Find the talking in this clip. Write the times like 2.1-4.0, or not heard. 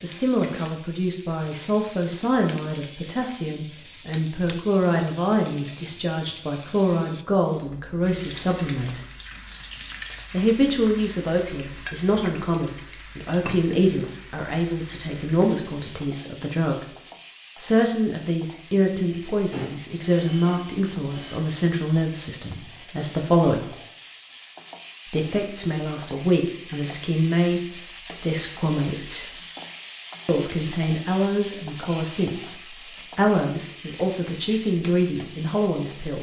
0.0-9.0, 10.3-16.9, 17.6-23.6, 25.1-29.4, 30.2-36.1.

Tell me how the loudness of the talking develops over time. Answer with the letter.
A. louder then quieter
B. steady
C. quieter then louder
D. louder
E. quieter
B.